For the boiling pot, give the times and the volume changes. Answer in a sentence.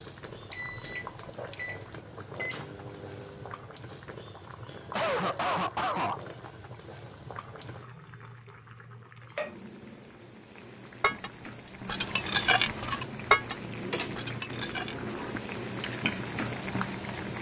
The boiling pot can be heard from 0.0 to 17.3 s, getting louder.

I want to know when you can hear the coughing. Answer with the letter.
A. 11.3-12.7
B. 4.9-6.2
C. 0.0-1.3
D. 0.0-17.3
B.